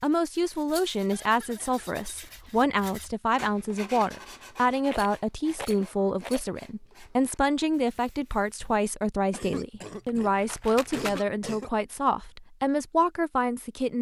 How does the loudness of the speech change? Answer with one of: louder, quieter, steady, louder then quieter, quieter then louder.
steady.